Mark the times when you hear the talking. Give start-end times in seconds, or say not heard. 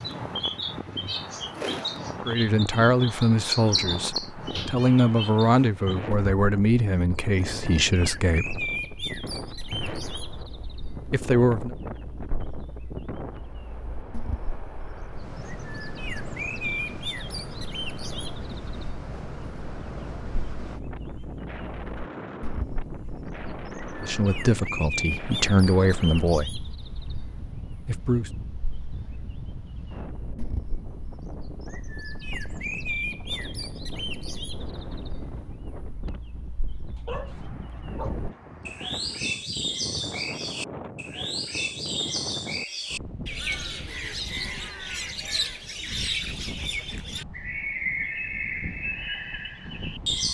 2.2-8.6, 11.1-11.8, 24.0-26.5, 27.9-28.3.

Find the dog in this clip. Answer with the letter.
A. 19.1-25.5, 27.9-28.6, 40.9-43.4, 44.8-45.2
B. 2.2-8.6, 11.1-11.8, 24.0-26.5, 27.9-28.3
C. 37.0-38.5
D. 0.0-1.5
C.